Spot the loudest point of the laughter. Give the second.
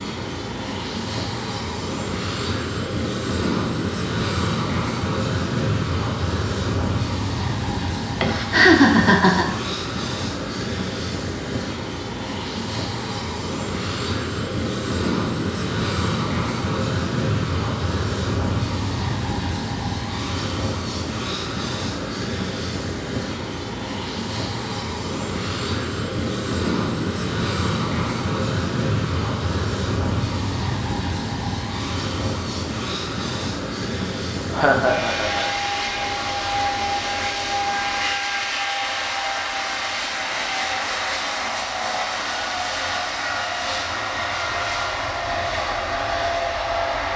9 s.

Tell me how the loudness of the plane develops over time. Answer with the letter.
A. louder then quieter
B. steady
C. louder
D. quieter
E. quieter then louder
B.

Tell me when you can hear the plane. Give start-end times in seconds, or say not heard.
0.0-47.1.